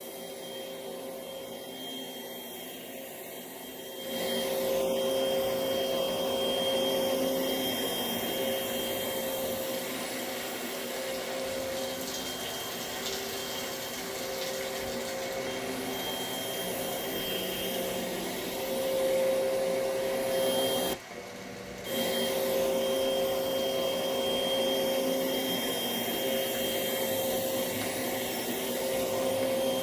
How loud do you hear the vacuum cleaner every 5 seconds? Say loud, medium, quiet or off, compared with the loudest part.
medium, loud, medium, loud, loud, loud.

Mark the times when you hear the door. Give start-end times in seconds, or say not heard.
not heard.